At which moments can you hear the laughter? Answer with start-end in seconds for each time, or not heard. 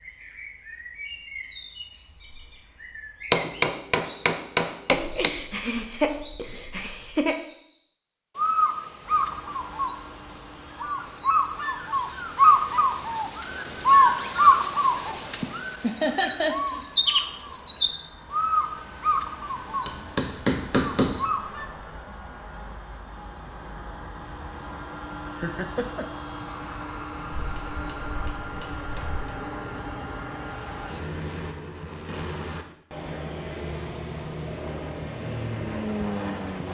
4.9-7.3, 15.4-16.9, 25.4-26.1.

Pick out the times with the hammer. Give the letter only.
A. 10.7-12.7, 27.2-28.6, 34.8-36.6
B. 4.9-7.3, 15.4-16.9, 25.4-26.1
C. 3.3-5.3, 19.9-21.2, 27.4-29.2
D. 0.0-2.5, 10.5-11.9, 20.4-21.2
C.